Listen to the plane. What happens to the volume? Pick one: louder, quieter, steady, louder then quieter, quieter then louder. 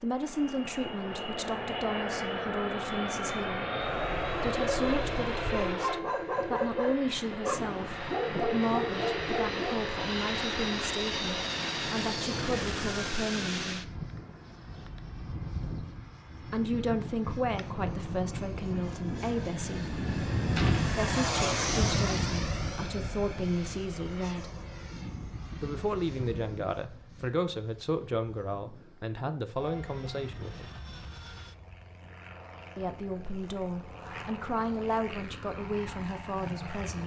quieter.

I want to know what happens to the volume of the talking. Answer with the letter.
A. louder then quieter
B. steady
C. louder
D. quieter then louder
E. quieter
B.